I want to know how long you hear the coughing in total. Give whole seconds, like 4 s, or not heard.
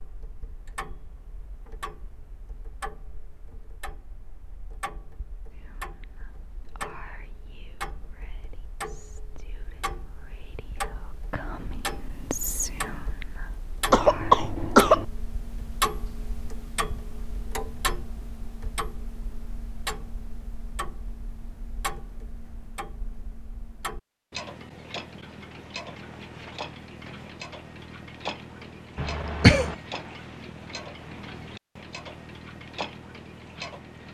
2 s.